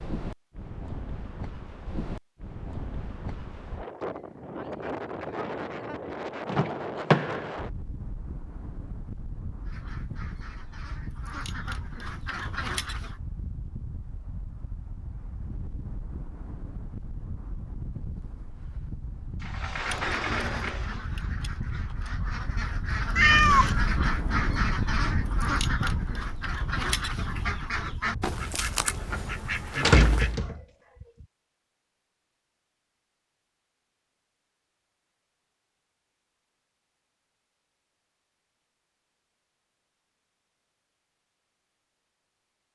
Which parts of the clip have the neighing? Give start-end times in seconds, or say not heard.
not heard.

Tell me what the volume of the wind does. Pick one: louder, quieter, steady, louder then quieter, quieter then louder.
quieter then louder.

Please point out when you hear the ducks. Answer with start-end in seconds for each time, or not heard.
9.7-13.2, 19.8-30.4.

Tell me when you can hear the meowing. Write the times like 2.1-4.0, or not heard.
23.1-23.8.